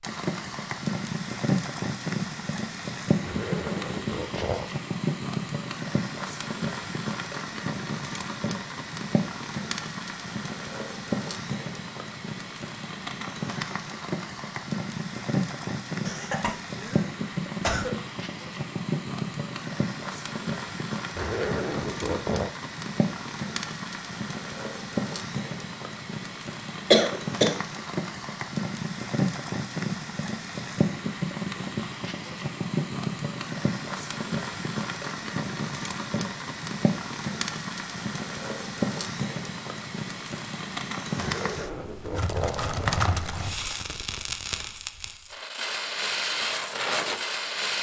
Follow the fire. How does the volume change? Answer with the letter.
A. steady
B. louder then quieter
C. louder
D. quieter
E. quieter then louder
A.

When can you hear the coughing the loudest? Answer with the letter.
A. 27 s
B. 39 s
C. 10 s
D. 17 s
A.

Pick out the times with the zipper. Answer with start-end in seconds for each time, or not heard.
3.2-4.8, 21.1-22.5, 41.1-43.0.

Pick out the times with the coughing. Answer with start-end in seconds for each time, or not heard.
16.1-17.9, 26.9-27.6.